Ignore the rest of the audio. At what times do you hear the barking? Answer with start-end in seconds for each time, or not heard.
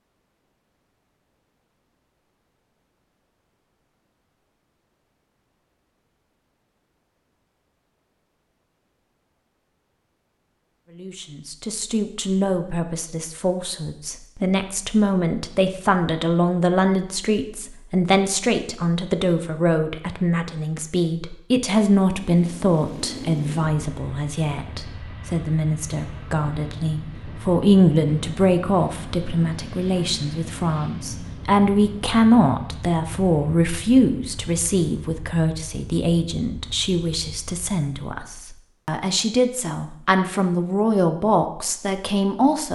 not heard.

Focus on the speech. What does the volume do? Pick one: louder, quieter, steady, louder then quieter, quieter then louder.
steady.